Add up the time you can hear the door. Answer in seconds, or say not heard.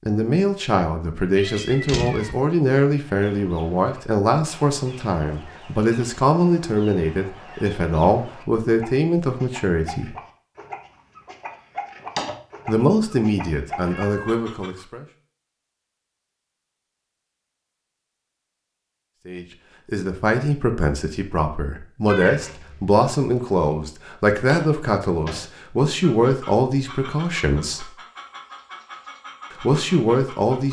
2 s.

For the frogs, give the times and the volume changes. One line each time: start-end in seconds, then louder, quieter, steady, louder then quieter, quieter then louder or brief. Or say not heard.
not heard.